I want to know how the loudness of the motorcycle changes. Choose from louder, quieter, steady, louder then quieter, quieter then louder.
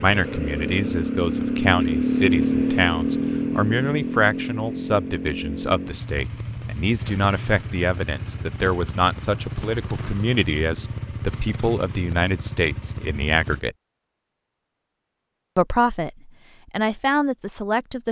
quieter.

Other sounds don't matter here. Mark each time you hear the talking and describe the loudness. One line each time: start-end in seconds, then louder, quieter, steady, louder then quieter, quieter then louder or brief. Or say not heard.
0.0-13.8 steady
15.6-18.0 brief.